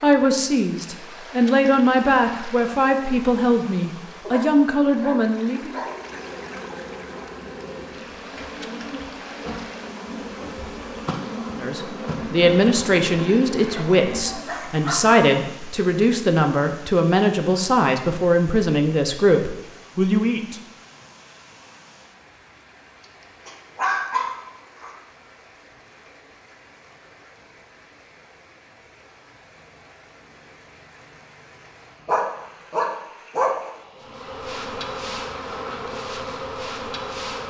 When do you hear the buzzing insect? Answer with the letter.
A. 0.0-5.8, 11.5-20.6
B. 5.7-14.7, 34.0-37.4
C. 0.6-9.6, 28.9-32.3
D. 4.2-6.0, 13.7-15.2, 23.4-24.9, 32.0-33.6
B.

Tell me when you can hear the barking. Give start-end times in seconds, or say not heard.
4.2-6.0, 13.7-15.2, 23.4-24.9, 32.0-33.6.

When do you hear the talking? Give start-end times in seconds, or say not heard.
0.0-5.8, 11.5-20.6.